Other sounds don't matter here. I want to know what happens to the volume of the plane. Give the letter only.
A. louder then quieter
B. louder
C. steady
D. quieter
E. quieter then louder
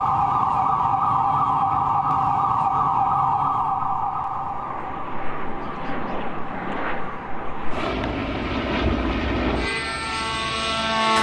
B.